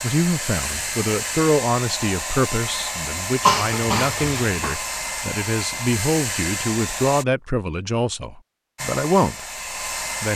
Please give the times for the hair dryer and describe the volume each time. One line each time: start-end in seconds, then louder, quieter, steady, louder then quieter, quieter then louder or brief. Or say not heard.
0.0-7.2 steady
8.8-10.3 brief.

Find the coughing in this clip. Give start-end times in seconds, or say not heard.
3.5-4.8.